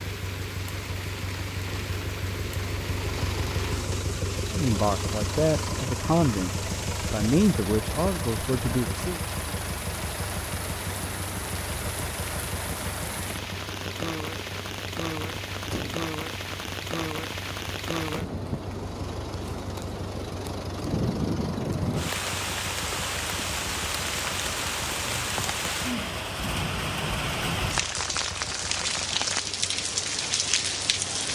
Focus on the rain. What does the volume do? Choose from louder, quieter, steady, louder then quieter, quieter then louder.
louder.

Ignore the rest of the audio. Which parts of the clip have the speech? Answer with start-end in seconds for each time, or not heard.
4.5-9.2.